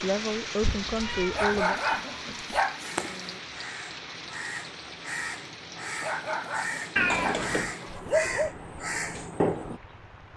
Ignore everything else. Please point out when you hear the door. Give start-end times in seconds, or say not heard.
not heard.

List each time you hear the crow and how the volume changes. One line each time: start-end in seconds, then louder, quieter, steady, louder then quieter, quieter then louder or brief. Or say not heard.
2.8-9.8 louder.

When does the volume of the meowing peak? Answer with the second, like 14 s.
7 s.